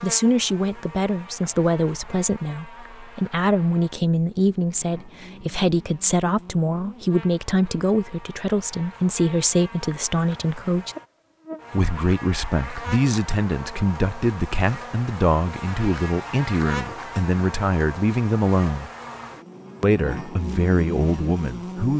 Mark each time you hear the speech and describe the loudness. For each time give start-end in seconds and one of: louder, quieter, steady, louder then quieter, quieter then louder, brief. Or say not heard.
0.0-10.9 steady
11.7-18.9 steady
19.8-21.9 brief.